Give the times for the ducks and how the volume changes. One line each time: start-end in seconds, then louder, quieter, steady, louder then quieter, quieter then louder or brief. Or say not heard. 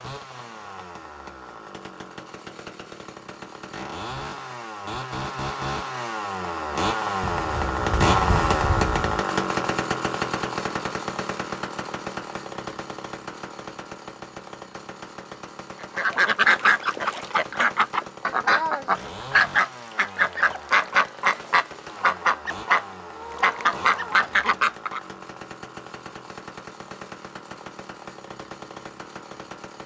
15.8-25.0 steady.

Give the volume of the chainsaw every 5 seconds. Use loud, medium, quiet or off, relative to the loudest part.
quiet, loud, medium, quiet, quiet, quiet.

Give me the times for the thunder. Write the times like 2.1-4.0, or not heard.
7.2-9.2.